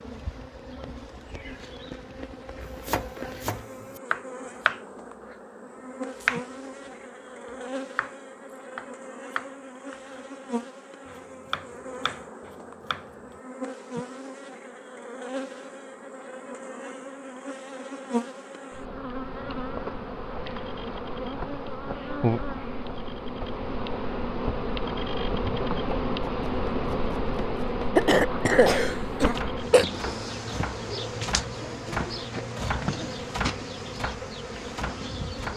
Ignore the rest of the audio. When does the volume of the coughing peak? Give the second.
28 s.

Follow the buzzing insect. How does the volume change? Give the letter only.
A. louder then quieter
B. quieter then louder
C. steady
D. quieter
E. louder
E.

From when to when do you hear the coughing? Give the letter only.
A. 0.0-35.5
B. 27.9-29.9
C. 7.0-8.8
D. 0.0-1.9
B.